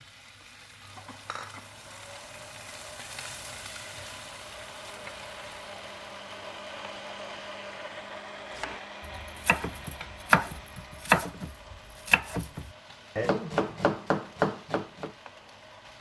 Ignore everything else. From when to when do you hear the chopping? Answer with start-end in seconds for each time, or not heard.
8.6-15.1.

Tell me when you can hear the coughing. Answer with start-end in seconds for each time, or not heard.
0.8-1.7.